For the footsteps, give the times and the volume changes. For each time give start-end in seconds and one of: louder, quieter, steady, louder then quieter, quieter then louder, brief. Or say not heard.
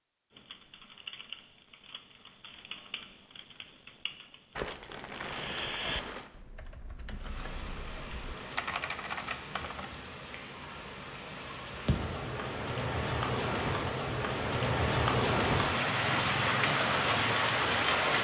not heard.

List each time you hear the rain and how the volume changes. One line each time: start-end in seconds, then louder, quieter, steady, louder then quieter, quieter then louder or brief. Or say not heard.
7.2-18.2 louder.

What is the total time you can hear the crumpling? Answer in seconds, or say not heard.
2 s.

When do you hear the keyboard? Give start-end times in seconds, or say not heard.
0.3-9.9.